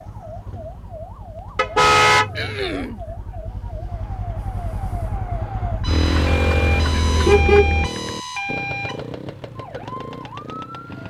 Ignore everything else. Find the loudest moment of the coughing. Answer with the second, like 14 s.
3 s.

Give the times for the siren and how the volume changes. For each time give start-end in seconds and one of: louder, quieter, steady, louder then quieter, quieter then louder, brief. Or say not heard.
0.0-11.0 louder then quieter.